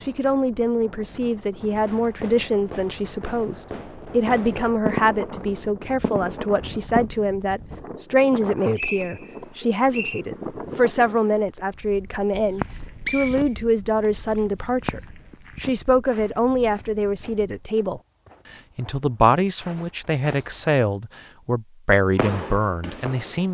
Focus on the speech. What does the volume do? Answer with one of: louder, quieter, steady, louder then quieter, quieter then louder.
steady.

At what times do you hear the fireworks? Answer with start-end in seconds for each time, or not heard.
1.8-7.0, 22.1-23.4.